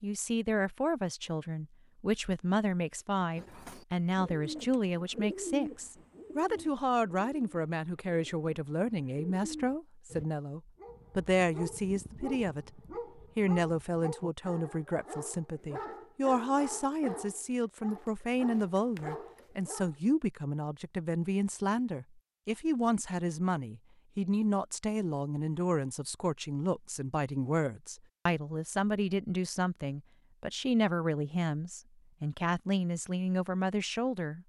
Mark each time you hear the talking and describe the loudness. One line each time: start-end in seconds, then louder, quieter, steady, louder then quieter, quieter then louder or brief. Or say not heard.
0.0-34.4 steady.